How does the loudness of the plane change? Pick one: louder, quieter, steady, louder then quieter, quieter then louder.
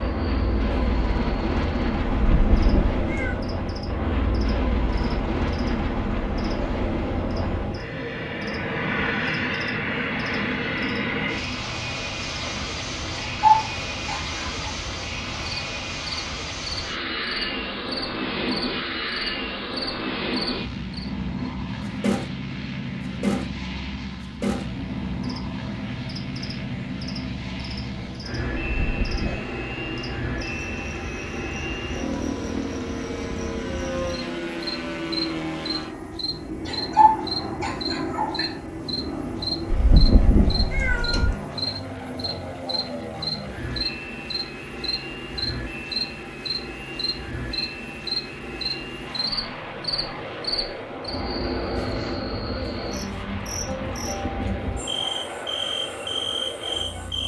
quieter.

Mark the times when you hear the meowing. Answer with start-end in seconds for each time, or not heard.
2.1-3.4, 28.8-29.4, 39.7-41.4.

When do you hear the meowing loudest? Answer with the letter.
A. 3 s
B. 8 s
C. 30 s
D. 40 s
D.